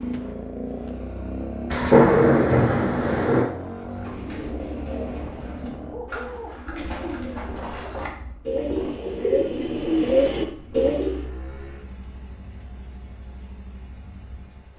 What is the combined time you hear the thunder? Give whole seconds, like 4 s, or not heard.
2 s.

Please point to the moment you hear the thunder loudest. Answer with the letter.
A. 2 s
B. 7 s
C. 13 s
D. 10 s
A.